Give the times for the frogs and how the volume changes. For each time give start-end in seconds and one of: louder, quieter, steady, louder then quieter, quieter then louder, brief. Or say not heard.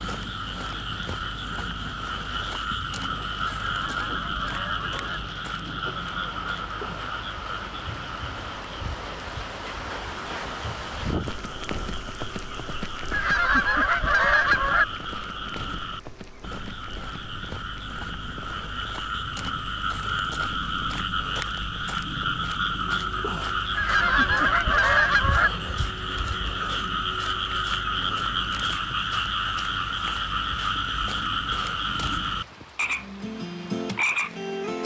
0.0-34.8 quieter then louder.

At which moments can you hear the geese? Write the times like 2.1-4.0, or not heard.
3.5-5.2, 13.1-14.8, 23.8-25.5.